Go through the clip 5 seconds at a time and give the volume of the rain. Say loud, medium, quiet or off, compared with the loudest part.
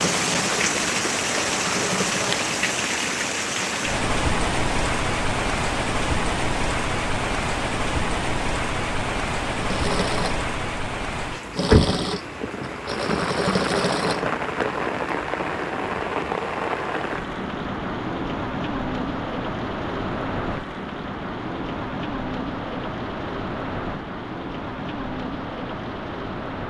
loud, loud, loud, loud, medium, medium.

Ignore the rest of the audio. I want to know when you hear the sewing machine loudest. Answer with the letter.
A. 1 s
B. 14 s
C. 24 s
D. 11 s
B.